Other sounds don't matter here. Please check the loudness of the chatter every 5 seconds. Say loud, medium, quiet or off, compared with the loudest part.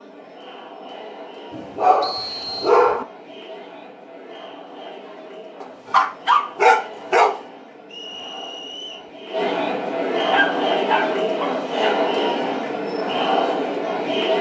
quiet, medium, loud.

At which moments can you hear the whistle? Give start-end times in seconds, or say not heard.
2.0-2.7, 7.9-9.1.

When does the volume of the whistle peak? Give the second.
2 s.